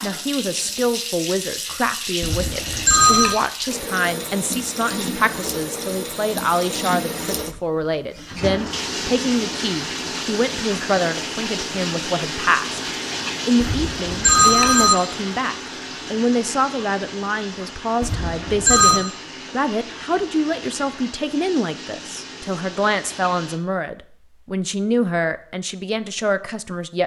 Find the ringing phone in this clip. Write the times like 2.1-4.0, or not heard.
2.2-3.4, 13.6-14.9, 18.0-19.0.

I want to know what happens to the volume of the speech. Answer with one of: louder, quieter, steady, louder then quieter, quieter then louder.
steady.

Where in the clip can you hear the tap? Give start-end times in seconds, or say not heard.
0.0-23.6.